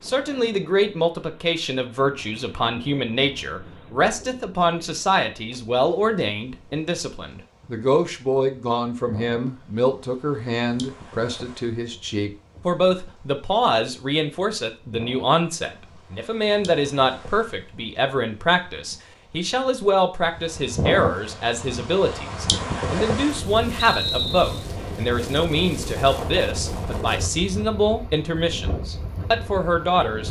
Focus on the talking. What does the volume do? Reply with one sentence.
The loudness of the talking stays about the same.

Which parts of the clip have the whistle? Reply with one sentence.
The whistle can be heard from 23.8 to 24.6 s.